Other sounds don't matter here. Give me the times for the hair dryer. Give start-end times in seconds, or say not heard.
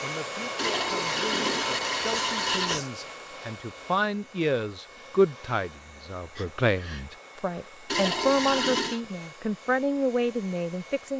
0.0-11.1.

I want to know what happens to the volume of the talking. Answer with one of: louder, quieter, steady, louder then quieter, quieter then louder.
louder.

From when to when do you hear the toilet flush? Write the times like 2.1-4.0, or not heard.
0.6-2.8, 7.8-9.0.